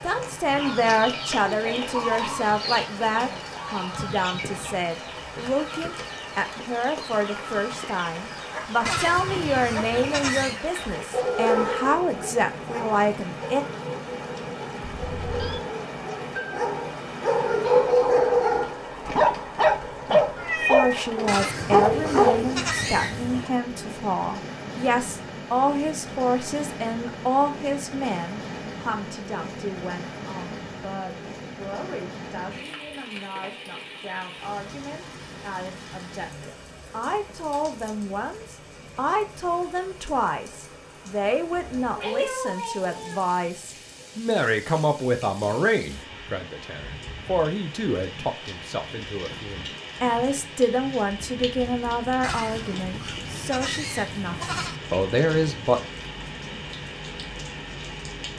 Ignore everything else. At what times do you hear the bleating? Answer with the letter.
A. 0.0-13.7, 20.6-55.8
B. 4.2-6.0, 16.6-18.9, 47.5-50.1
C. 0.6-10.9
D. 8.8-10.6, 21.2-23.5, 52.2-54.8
D.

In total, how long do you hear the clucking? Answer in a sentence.
The clucking can be heard for 10 seconds in total.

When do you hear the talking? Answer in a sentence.
The talking can be heard from 0.0 to 13.7 s and from 20.6 to 55.8 s.